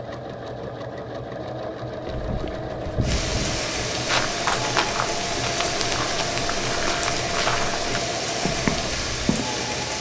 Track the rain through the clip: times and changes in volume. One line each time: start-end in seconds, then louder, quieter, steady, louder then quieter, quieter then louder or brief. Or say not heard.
3.0-9.9 steady.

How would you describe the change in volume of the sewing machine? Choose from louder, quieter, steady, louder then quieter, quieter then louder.
steady.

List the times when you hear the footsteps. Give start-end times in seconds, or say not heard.
2.0-9.4.